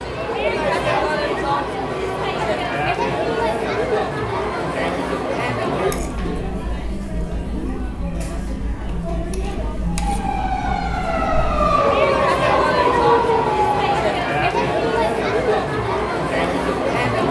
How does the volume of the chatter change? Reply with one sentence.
The volume of the chatter goes down, then up.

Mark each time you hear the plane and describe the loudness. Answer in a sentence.
You can't hear the plane here.